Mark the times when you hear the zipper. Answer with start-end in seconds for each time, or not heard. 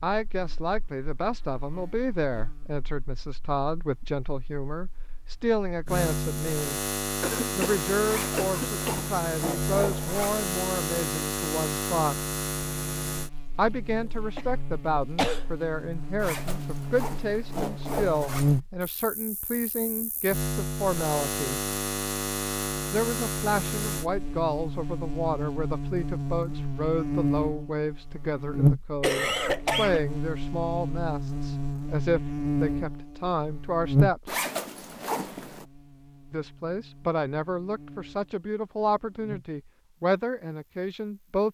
8.1-10.4, 16.1-18.6, 34.2-35.6.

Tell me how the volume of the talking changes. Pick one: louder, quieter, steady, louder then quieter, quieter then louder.
steady.